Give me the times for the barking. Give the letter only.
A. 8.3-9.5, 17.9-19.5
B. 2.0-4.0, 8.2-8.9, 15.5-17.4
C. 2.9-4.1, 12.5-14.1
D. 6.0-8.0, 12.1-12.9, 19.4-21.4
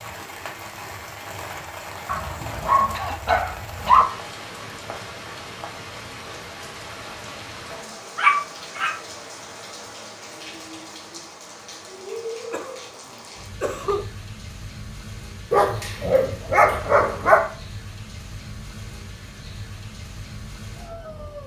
B.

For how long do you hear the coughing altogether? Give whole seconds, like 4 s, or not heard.
3 s.